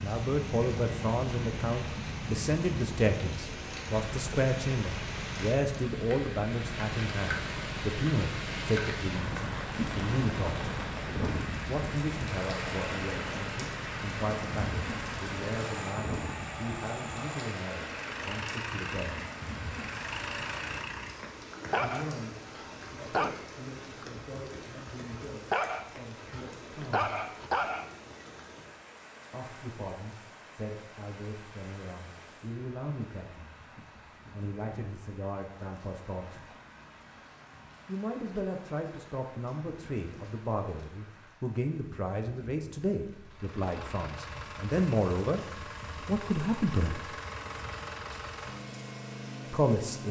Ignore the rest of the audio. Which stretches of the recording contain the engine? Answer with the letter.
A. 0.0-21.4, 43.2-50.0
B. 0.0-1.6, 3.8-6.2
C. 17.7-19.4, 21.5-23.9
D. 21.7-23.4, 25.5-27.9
A.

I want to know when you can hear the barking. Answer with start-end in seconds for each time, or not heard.
21.7-23.4, 25.5-27.9.